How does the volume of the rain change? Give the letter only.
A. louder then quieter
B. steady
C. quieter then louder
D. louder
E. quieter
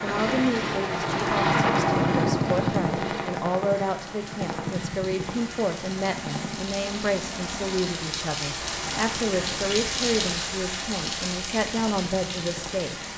D.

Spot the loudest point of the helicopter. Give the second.
2 s.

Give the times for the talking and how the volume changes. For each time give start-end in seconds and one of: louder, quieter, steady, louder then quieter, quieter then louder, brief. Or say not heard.
0.0-12.9 steady.